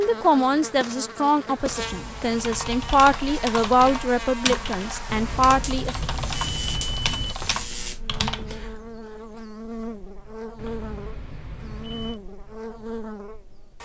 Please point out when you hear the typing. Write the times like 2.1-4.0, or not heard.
2.3-8.9.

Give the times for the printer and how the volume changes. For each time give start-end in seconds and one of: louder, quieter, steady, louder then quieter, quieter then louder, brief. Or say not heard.
not heard.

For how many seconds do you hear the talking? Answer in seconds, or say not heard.
6 s.